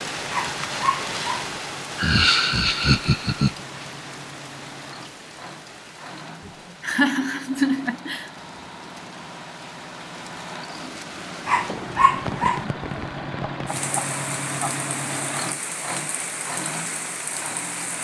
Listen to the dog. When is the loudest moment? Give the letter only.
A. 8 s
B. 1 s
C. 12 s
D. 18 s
C.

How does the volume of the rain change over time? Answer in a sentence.
The volume of the rain goes down, then up.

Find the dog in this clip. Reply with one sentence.
You can hear the dog from 0.3 to 1.5 s and from 11.4 to 12.7 s.